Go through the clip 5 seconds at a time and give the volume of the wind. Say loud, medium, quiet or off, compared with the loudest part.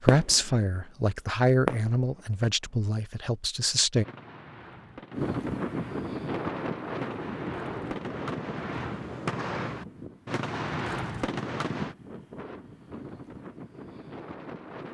off, loud, medium.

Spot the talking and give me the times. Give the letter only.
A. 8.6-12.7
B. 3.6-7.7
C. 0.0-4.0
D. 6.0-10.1
C.